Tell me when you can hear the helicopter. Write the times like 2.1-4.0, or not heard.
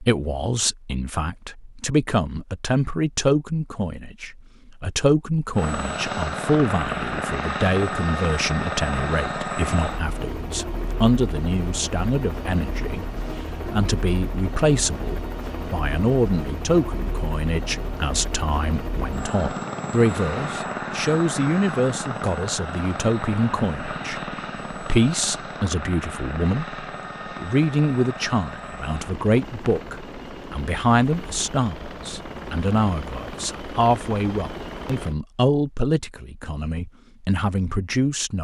5.5-35.1.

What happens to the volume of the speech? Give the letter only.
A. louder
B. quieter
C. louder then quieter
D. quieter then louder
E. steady
E.